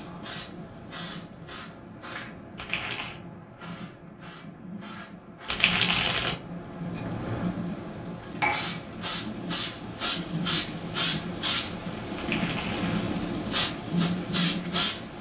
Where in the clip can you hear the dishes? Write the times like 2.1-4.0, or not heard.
8.2-8.8.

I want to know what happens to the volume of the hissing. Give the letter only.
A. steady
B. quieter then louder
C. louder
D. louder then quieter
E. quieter
C.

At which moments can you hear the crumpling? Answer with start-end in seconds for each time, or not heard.
2.5-3.2, 5.5-6.3, 12.2-13.1.